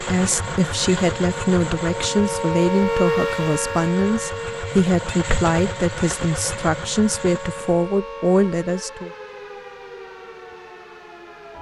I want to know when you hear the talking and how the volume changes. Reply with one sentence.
You can hear the talking from 0.0 to 9.1 s, at a steady volume.